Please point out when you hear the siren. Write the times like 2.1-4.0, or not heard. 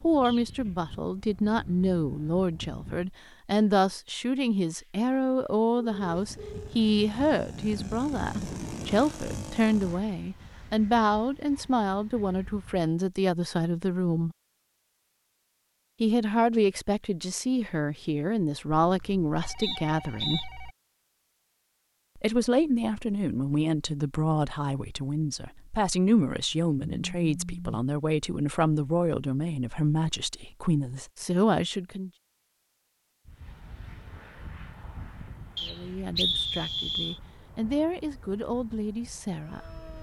not heard.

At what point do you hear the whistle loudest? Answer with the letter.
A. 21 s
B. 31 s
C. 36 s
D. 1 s
C.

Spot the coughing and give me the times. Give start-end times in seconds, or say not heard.
not heard.